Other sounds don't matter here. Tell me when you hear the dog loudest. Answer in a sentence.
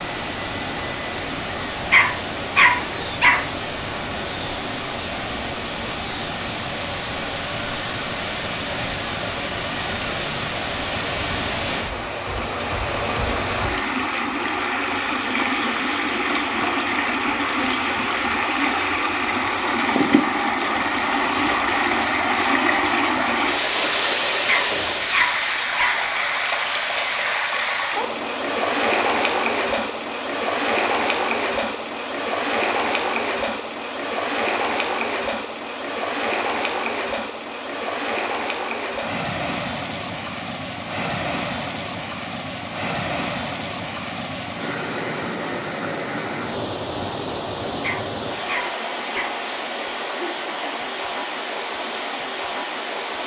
The volume of the dog peaks at 3 seconds.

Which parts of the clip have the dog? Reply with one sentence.
The dog can be heard from 1.9 to 3.5 s, from 24.4 to 26.0 s and from 47.8 to 49.4 s.